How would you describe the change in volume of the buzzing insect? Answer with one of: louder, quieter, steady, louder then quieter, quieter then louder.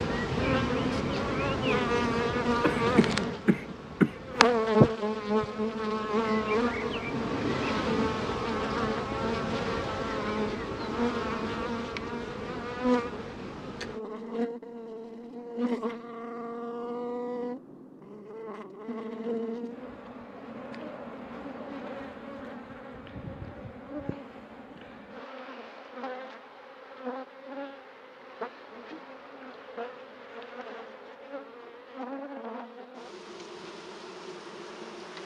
quieter.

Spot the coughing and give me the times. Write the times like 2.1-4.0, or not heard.
2.6-4.5.